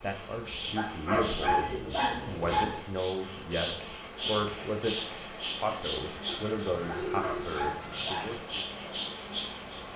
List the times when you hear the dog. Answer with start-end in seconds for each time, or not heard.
0.7-2.8, 6.8-8.3.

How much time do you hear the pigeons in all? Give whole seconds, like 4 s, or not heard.
4 s.